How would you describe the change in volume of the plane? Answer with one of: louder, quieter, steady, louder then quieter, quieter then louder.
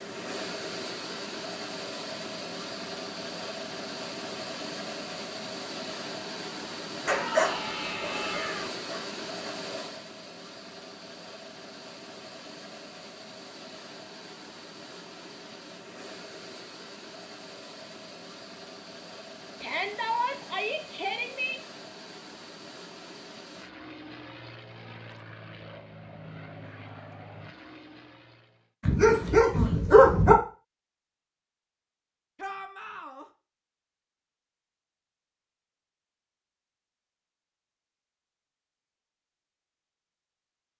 quieter.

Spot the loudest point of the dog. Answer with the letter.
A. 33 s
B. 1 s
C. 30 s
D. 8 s
C.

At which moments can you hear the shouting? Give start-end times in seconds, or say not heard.
7.0-8.7, 19.6-21.6, 32.4-33.2.